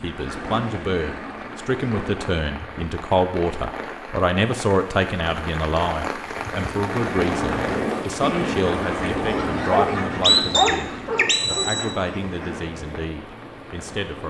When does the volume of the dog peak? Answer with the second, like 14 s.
10 s.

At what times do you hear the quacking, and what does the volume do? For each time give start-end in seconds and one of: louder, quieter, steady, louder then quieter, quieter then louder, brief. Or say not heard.
0.0-2.2 brief
6.7-12.7 quieter.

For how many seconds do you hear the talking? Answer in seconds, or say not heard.
14 s.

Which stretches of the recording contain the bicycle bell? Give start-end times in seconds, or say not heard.
not heard.